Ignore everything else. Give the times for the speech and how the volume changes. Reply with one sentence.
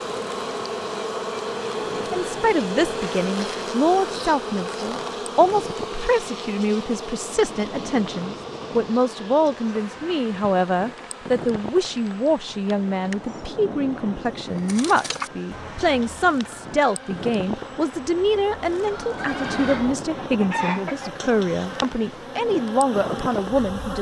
The speech can be heard from 2.1 to 23.9 s, at a steady volume.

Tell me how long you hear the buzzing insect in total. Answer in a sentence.
The buzzing insect can be heard for 24 seconds in total.